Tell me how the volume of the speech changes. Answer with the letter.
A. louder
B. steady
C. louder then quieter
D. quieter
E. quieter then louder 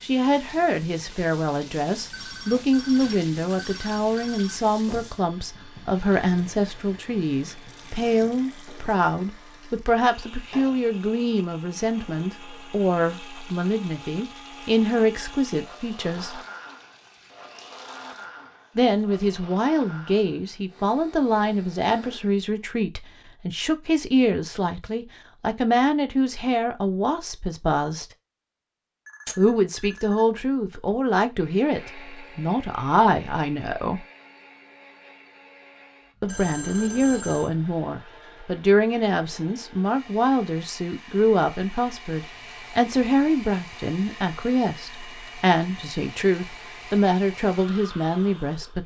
B.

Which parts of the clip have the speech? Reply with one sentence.
You can hear the speech from 0.0 to 16.4 s, from 18.8 to 28.1 s, from 29.4 to 34.0 s and from 36.2 to 48.8 s.